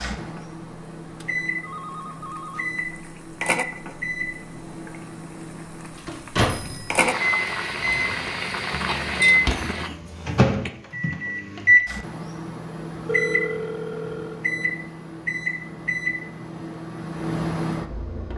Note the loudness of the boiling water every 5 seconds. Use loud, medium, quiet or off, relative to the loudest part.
medium, loud, off, off.